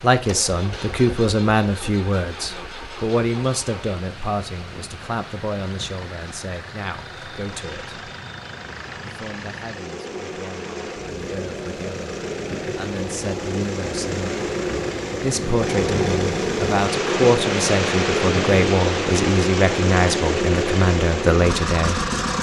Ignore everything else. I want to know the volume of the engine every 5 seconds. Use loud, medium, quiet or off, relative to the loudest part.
quiet, quiet, medium, loud, loud.